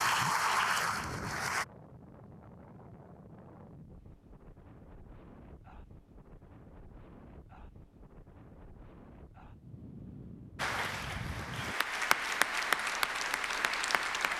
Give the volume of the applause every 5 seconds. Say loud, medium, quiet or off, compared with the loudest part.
loud, off, loud.